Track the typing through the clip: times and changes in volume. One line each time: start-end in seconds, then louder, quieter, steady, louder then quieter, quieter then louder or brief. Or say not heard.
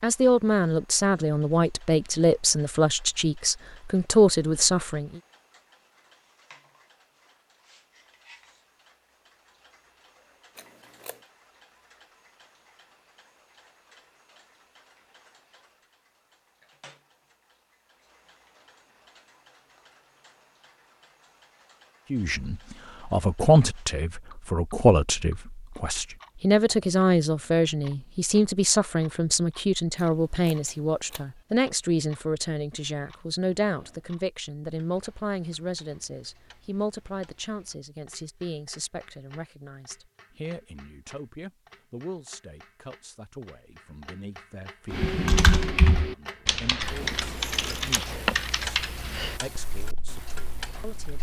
44.9-51.1 quieter.